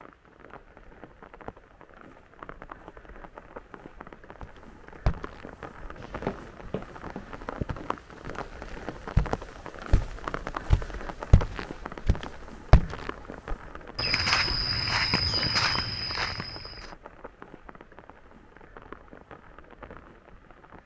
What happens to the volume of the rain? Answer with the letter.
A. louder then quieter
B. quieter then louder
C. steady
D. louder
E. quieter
A.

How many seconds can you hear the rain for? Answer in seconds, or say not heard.
21 s.